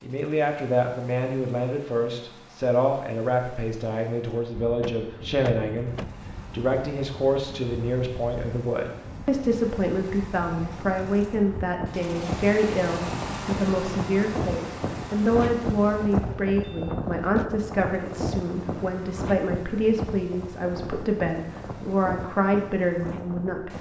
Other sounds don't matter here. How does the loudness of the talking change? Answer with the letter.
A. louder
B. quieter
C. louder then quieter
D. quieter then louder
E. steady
E.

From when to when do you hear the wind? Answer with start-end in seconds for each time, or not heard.
4.5-23.7.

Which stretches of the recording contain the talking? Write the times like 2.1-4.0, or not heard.
0.0-23.7.